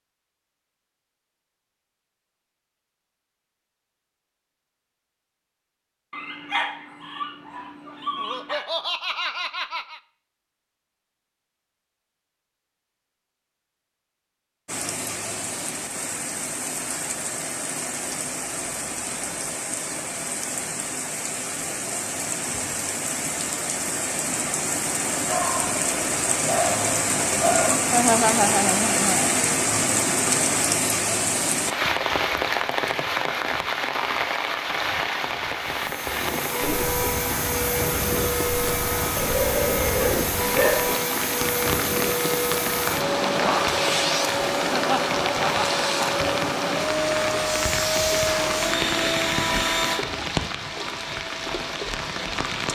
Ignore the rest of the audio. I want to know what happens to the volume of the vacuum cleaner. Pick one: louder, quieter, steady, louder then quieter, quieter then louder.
steady.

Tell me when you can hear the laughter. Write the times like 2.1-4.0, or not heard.
8.2-10.0, 27.9-29.2, 44.7-45.6.